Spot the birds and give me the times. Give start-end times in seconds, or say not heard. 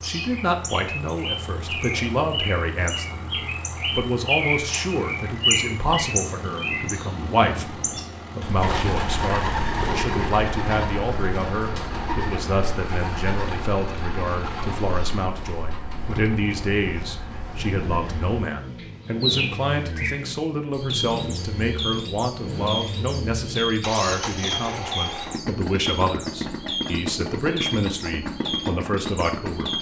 0.0-29.7.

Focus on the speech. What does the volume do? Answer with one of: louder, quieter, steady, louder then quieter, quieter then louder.
steady.